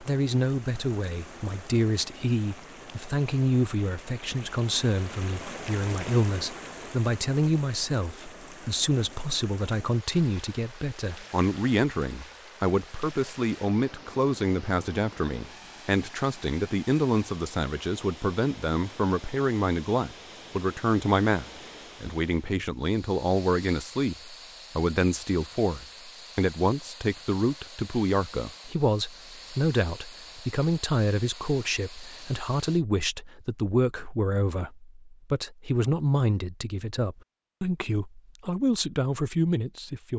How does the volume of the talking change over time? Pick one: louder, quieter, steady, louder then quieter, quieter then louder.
steady.